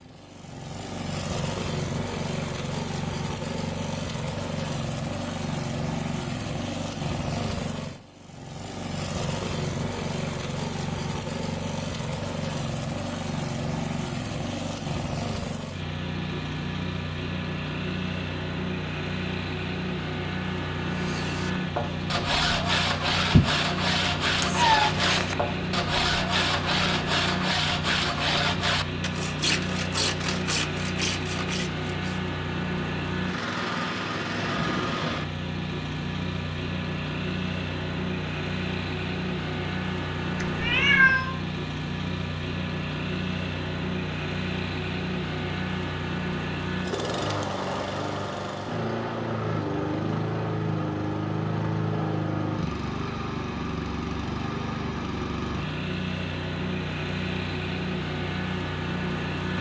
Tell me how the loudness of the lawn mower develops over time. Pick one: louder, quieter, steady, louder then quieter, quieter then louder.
steady.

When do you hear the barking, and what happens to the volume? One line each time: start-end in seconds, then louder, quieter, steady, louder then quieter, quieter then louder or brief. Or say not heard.
not heard.